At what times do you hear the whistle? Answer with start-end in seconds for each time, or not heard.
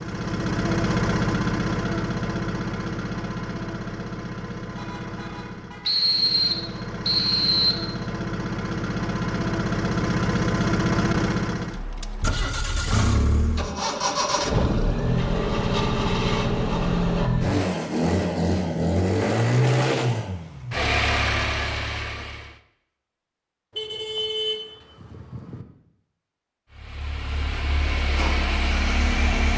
5.8-7.8.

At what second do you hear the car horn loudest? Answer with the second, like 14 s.
24 s.